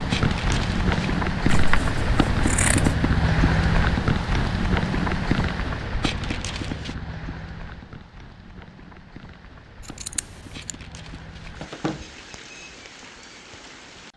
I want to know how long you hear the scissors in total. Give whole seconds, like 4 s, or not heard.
2 s.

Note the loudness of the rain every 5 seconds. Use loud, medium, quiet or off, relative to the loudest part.
loud, medium, quiet.